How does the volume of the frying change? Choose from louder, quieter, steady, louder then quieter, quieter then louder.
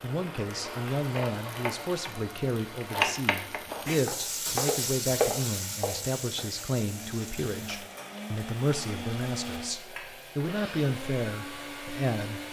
louder then quieter.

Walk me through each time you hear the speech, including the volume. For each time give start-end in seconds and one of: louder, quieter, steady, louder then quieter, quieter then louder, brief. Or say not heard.
0.0-12.4 steady.